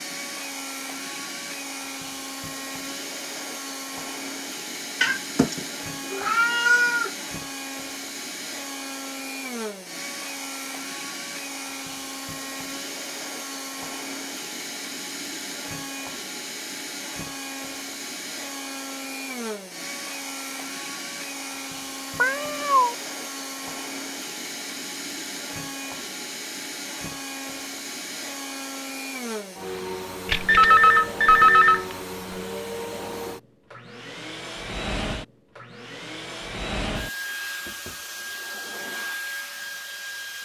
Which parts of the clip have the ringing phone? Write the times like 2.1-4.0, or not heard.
30.2-31.9.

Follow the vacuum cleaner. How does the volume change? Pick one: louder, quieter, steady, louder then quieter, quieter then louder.
steady.